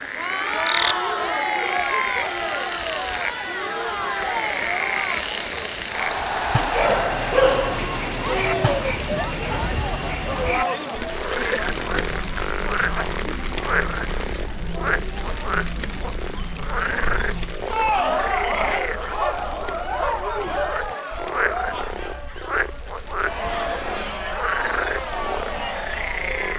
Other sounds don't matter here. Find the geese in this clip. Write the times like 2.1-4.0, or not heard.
not heard.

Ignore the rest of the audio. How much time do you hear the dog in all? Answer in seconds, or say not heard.
3 s.